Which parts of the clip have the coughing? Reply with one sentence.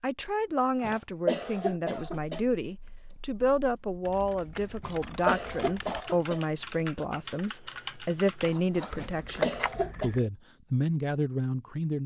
You can hear the coughing from 0.8 to 2.4 s, from 4.8 to 6.4 s and from 8.9 to 10.1 s.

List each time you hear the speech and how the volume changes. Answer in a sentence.
You can hear the speech from 0.0 to 12.0 s, at a steady volume.